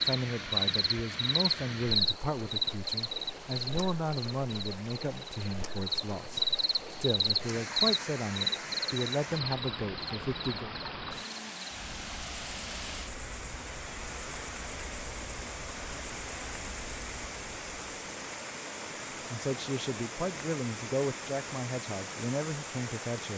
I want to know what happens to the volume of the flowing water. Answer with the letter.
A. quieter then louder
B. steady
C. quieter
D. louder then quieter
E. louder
B.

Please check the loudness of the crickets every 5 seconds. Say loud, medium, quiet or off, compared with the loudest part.
loud, loud, quiet, quiet, off.